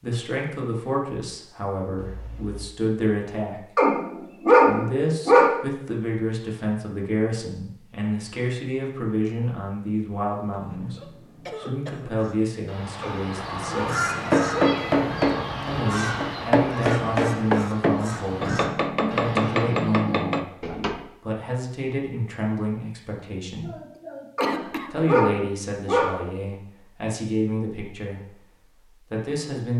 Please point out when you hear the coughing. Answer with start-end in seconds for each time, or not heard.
1.9-2.6, 10.5-12.2, 23.6-24.9.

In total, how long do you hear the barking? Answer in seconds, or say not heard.
5 s.